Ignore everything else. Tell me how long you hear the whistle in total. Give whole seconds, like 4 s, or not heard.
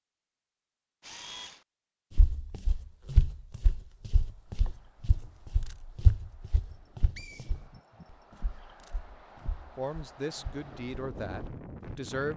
2 s.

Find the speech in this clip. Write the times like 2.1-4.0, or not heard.
9.8-12.3.